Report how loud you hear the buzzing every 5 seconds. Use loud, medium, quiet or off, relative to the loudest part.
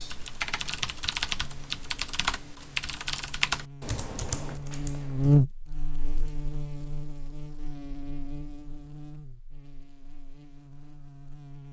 quiet, loud, quiet.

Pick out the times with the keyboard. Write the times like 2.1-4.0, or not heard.
0.0-5.4.